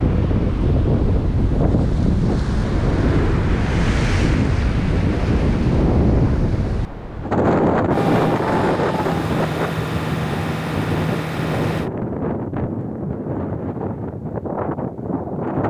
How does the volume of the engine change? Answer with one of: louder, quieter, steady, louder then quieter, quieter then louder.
steady.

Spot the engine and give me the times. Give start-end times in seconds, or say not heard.
7.9-11.9.